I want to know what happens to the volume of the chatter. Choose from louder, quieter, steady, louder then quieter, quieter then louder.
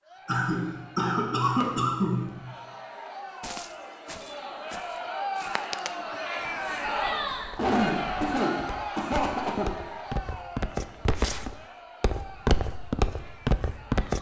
louder then quieter.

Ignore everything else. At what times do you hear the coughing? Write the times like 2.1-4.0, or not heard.
0.2-2.5, 7.3-9.7.